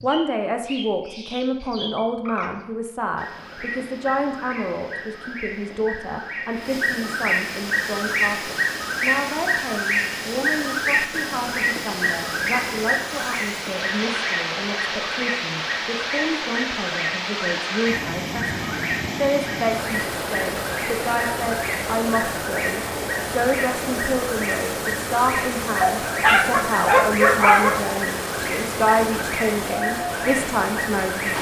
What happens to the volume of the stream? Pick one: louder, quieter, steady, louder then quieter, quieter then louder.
louder.